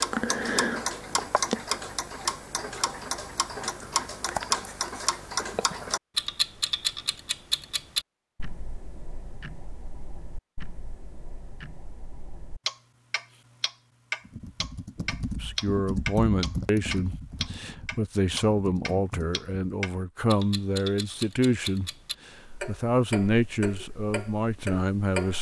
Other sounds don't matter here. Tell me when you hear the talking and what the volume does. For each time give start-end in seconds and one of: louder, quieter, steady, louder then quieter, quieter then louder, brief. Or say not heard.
15.3-25.3 steady.